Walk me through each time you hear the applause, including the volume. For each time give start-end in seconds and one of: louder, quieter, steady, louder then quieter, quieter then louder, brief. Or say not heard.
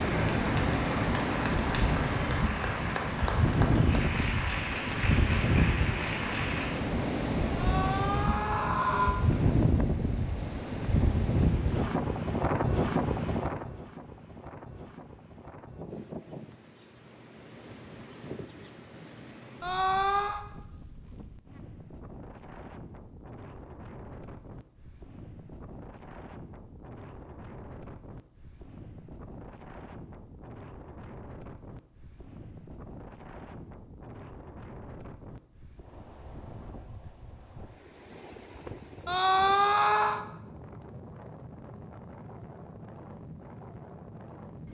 0.0-6.9 steady.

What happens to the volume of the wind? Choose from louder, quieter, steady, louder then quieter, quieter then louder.
quieter.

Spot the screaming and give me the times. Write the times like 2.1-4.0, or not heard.
7.5-9.2, 19.6-20.4, 39.0-40.2.